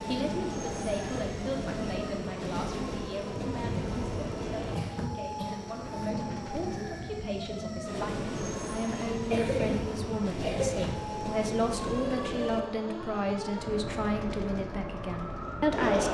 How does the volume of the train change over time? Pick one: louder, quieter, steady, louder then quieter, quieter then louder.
quieter.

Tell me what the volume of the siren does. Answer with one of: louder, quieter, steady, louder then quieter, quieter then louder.
steady.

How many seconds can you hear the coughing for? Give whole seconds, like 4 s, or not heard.
3 s.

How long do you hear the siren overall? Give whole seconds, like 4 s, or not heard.
16 s.